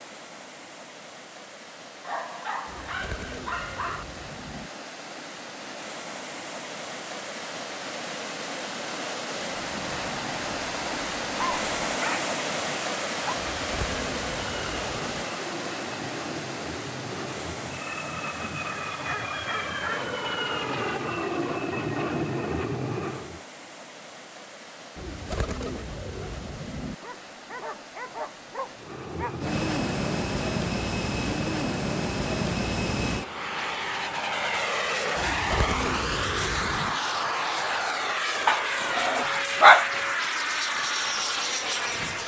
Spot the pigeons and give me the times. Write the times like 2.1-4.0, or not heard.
2.6-4.7, 13.3-15.2, 24.9-26.9, 35.1-37.0.